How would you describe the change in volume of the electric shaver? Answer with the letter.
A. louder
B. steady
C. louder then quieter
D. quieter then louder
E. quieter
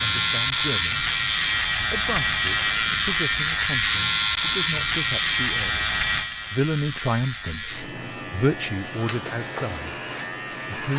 E.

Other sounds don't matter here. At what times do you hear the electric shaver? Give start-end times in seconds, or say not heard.
0.0-10.9.